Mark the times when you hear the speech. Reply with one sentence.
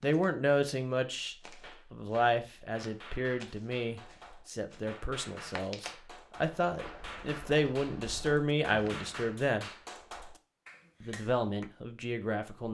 The speech can be heard from 0.0 to 9.7 s and from 11.0 to 12.6 s.